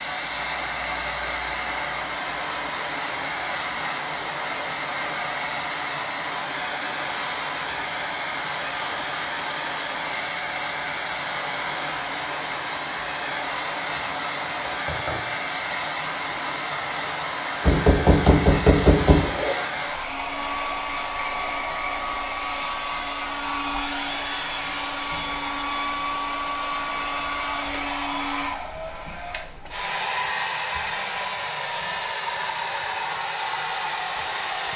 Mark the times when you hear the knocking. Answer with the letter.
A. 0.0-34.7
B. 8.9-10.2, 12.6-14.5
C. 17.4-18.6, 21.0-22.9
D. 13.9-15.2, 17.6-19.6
D.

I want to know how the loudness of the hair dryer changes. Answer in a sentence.
The volume of the hair dryer stays about the same.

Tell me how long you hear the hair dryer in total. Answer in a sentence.
The hair dryer can be heard for 35 seconds in total.